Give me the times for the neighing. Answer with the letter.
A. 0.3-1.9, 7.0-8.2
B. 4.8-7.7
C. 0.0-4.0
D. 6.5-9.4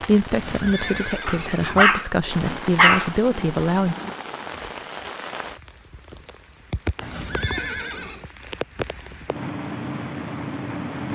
A.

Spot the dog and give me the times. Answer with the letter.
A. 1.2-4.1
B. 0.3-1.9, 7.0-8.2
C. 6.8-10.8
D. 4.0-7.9
A.